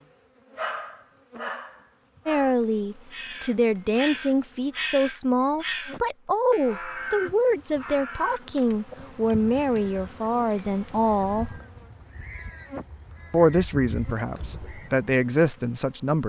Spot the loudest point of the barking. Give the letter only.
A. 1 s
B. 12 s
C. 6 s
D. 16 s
A.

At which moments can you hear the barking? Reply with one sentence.
You can hear the barking from 0.6 to 2.5 s.